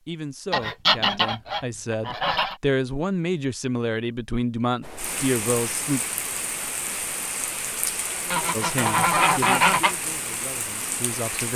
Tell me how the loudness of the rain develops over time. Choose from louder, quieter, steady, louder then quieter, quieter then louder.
steady.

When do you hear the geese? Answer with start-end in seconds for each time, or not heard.
0.5-2.5, 8.3-9.9.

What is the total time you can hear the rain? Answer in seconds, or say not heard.
7 s.